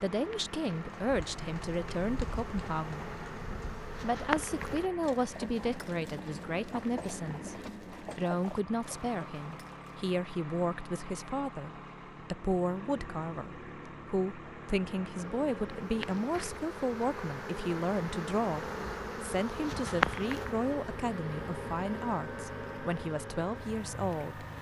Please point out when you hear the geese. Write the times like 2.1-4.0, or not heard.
not heard.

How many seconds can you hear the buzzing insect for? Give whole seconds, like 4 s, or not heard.
14 s.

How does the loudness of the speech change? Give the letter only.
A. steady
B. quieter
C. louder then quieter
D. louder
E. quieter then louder
A.